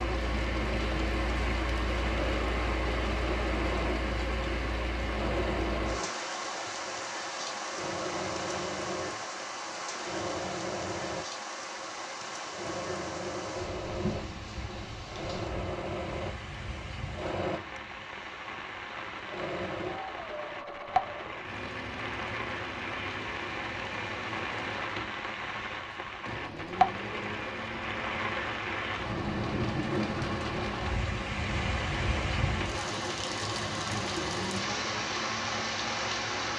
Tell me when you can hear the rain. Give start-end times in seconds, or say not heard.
0.0-36.5.